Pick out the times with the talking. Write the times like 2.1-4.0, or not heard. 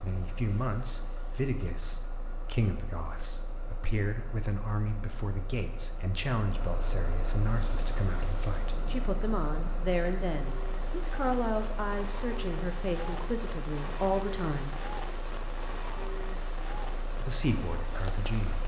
0.0-14.8, 17.2-18.6.